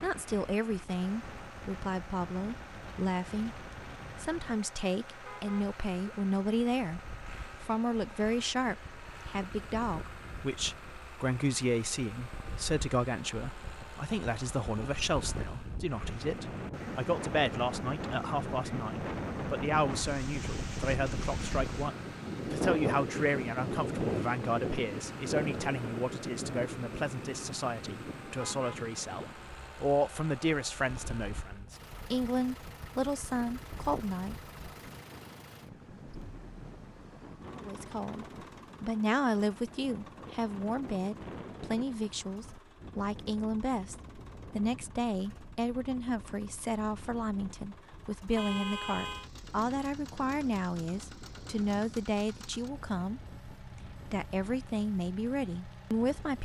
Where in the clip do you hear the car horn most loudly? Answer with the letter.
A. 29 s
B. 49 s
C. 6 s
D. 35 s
B.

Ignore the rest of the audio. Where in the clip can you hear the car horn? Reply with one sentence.
The car horn can be heard from 5.2 to 6.2 s, from 28.4 to 29.3 s and from 48.4 to 49.3 s.